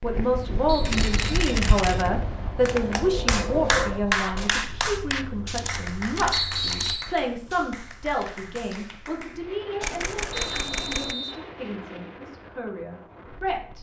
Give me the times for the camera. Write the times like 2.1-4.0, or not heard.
0.8-2.1, 5.0-7.0, 9.8-11.2.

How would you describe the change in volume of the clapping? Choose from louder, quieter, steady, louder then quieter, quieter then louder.
quieter.